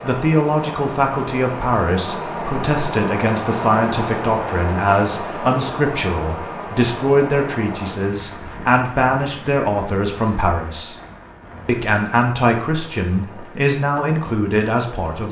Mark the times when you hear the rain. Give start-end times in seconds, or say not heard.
0.0-15.2.